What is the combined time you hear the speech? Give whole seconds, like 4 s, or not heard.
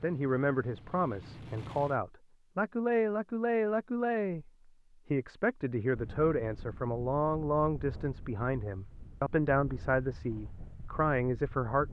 11 s.